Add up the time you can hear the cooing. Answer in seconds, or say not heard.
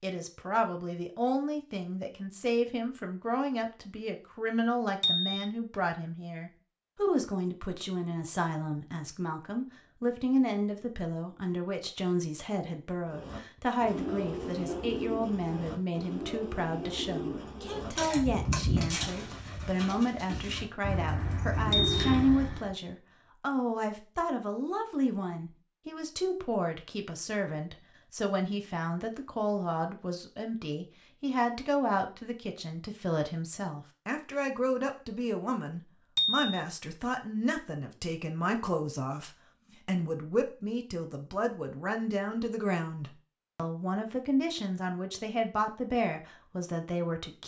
10 s.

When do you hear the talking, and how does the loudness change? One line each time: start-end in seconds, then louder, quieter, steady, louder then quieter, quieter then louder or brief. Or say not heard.
0.0-47.4 steady.